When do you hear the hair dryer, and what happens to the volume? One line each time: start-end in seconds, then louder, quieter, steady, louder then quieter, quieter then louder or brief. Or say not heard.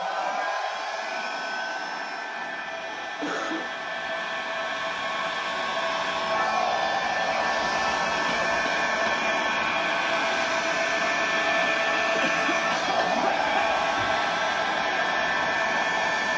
0.0-16.3 louder.